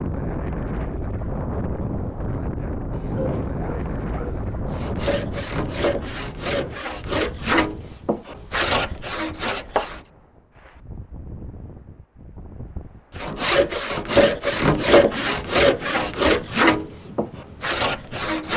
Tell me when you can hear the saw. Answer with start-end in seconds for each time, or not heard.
4.7-10.0, 13.2-18.5.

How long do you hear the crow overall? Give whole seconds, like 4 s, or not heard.
not heard.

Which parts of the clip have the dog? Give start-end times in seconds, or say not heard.
2.9-4.5.